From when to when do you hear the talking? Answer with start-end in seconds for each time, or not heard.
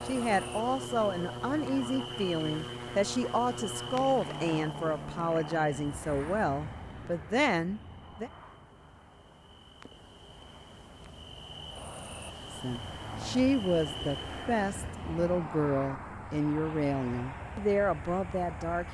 0.1-8.3, 12.5-18.8.